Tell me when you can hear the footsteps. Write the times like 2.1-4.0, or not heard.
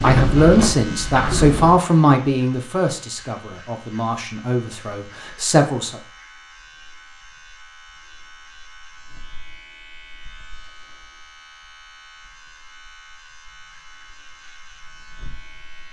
0.0-1.8.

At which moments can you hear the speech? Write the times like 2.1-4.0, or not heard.
0.0-6.0.